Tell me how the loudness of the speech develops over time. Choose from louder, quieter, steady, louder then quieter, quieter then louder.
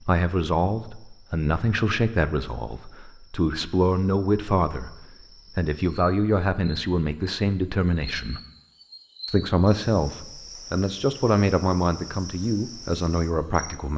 steady.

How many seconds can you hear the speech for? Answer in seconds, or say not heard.
13 s.